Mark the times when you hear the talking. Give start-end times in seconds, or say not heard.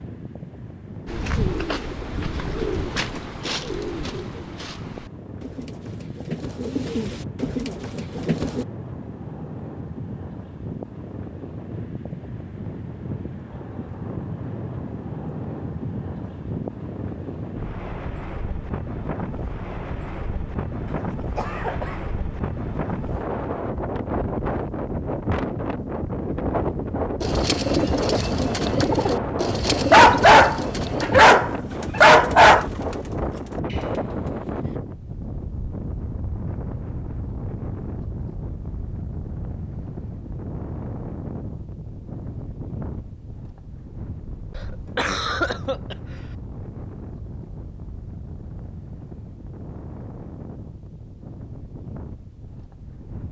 not heard.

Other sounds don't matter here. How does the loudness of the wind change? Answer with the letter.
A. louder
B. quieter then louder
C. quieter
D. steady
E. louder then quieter
E.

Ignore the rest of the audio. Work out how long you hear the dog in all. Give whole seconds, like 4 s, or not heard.
3 s.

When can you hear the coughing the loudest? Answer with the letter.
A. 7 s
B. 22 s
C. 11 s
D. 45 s
D.